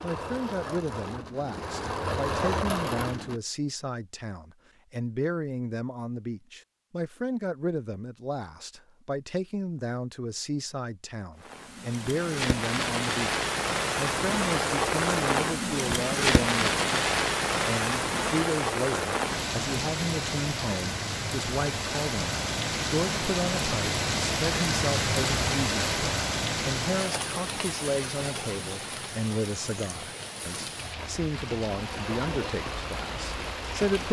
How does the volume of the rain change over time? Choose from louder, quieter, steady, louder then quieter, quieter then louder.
quieter.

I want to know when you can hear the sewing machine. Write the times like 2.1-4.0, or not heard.
0.0-3.4, 30.9-34.0.